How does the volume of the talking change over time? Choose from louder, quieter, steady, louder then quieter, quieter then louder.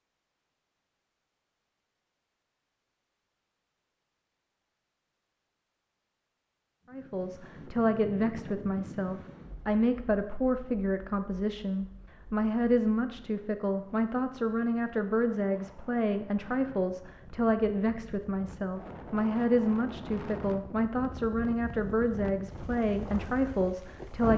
steady.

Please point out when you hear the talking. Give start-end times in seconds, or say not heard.
6.9-24.3.